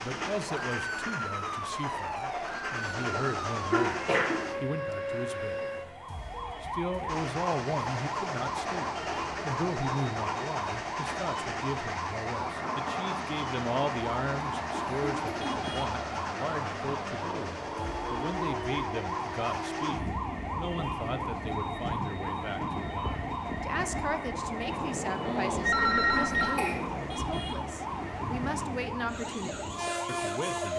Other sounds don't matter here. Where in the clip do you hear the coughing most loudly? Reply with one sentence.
The loudest moment of the coughing is at 4 seconds.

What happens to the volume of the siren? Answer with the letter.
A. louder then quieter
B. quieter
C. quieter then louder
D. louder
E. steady
E.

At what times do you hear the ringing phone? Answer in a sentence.
The ringing phone can be heard from 25.2 to 26.6 s.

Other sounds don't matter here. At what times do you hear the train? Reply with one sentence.
You can hear the train from 0.0 to 4.5 s and from 7.0 to 30.7 s.